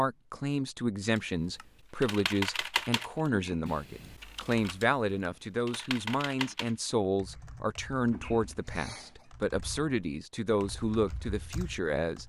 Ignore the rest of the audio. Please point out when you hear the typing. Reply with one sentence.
The typing can be heard from 1.1 to 12.2 s.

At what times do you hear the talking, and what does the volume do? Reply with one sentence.
You can hear the talking from 0.0 to 12.2 s, at a steady volume.